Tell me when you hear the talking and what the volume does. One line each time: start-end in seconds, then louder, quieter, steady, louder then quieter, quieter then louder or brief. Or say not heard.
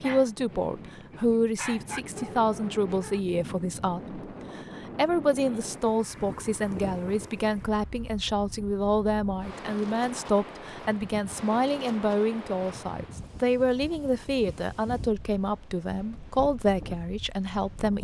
0.0-17.9 steady.